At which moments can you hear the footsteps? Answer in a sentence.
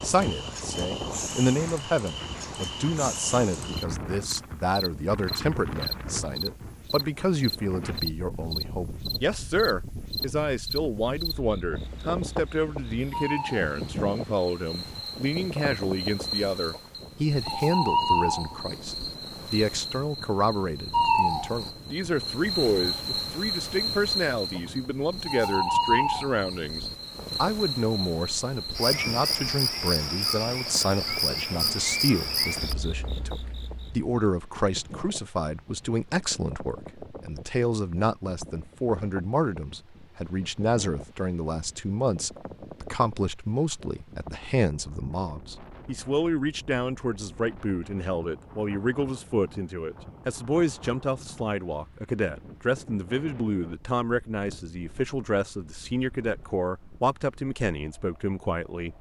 The footsteps can't be heard in this clip.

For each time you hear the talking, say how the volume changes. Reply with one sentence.
You can hear the talking from 0.0 to 58.9 s, at a steady volume.